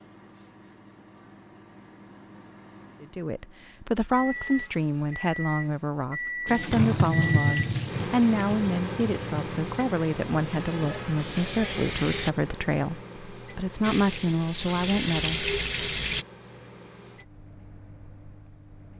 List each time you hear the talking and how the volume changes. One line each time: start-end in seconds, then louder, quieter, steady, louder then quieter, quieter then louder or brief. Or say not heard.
3.0-15.4 steady.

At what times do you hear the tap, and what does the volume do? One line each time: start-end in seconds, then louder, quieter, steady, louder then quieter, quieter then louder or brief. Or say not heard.
6.5-12.3 quieter then louder
13.8-16.2 brief.